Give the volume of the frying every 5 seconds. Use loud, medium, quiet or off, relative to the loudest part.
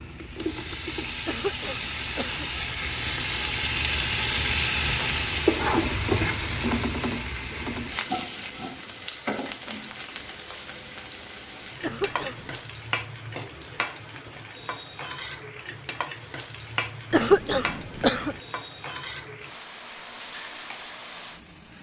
loud, loud, medium, medium, quiet.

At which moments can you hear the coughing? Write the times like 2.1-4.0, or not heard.
1.2-2.5, 11.8-12.6, 17.1-18.4.